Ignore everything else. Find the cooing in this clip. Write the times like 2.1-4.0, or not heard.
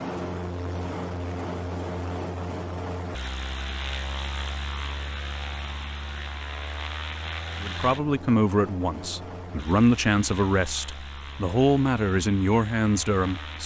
not heard.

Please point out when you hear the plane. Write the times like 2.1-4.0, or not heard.
0.0-13.6.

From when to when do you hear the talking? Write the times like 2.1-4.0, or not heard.
7.6-13.6.